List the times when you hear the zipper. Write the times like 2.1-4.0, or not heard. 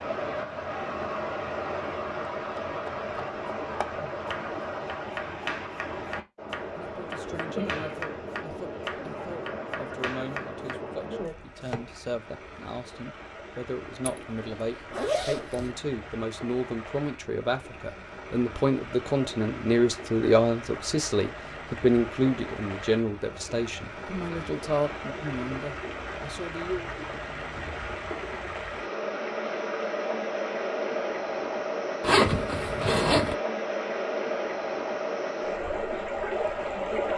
14.0-15.8, 32.0-33.4.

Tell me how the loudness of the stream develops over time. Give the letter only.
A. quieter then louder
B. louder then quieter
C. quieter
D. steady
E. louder
A.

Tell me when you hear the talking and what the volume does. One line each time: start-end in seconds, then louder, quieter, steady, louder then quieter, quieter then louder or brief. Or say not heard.
6.8-26.9 louder then quieter.